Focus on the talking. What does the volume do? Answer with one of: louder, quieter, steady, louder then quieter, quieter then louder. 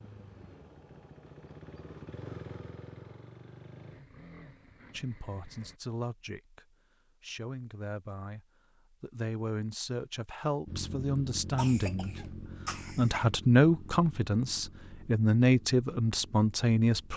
louder.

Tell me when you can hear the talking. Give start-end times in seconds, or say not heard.
4.9-17.1.